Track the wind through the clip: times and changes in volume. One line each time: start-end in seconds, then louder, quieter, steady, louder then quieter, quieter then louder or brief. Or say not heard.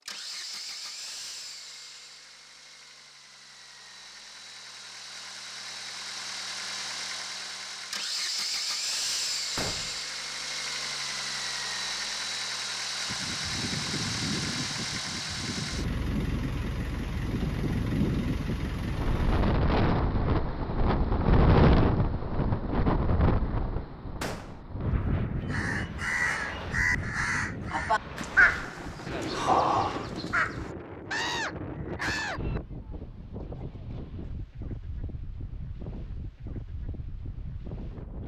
13.1-38.2 louder then quieter.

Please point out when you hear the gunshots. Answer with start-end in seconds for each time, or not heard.
9.6-10.0, 24.2-24.6.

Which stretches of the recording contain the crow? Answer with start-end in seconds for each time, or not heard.
25.4-32.4.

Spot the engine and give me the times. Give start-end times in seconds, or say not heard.
0.1-19.6.